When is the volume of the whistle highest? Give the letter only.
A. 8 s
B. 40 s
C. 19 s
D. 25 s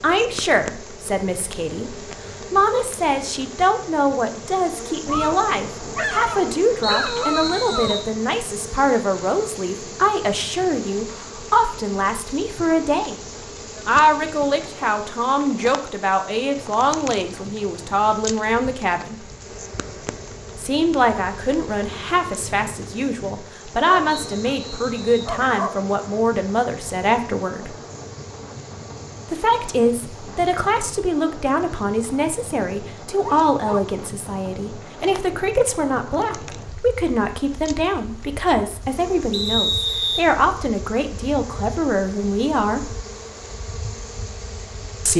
B.